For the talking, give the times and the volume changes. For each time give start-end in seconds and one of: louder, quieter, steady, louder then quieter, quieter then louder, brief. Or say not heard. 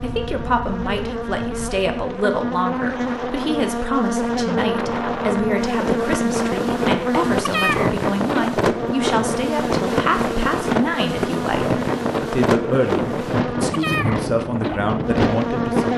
0.0-15.9 steady.